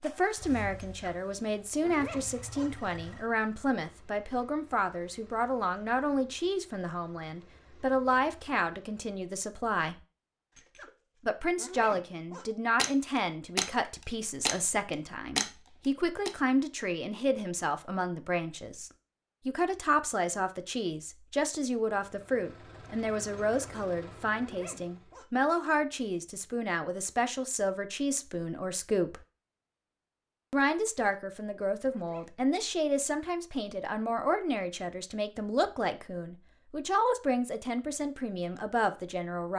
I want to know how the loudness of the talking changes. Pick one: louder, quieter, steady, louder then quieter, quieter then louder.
steady.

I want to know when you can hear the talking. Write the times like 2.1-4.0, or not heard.
0.0-9.9, 11.2-29.2, 30.5-39.5.